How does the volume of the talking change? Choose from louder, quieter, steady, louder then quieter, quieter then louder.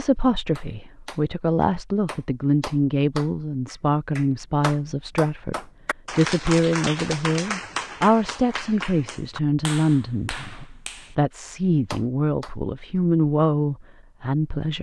steady.